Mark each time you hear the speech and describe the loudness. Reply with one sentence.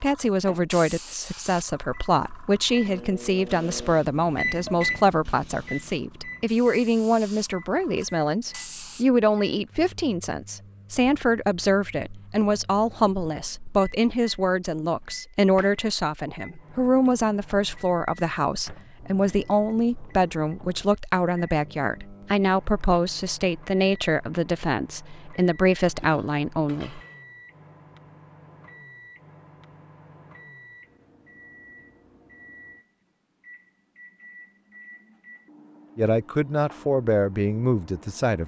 You can hear the speech from 0.0 to 27.0 s, at a steady volume; and briefly from 36.0 to 38.4 s.